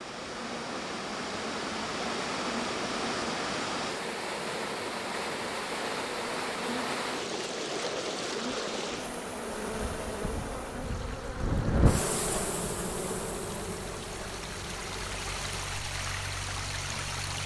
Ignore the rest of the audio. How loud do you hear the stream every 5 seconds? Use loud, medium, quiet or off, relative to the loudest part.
loud, loud, medium, loud.